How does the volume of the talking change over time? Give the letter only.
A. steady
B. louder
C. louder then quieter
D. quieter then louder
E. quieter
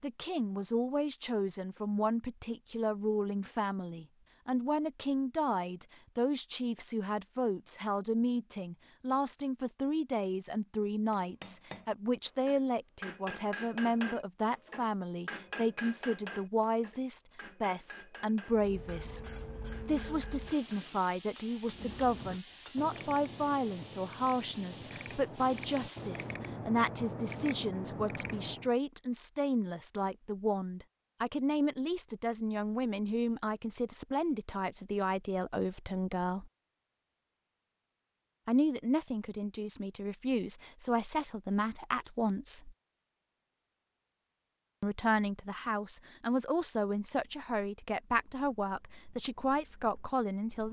A.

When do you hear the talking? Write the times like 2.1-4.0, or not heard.
0.0-36.5, 38.5-42.8, 44.8-50.6.